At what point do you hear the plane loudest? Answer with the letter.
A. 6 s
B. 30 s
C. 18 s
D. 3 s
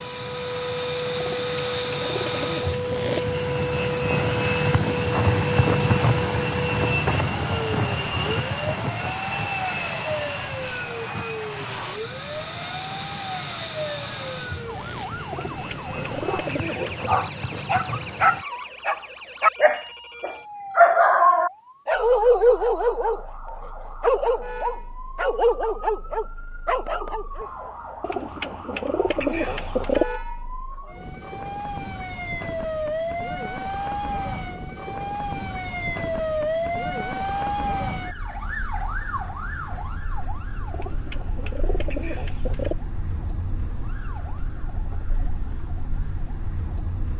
A.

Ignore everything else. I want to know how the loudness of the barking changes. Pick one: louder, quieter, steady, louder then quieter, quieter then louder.
louder then quieter.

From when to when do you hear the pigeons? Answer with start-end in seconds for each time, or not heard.
1.2-3.2, 15.3-17.0, 28.0-30.1, 40.7-42.8.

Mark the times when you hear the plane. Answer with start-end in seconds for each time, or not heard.
0.0-18.4.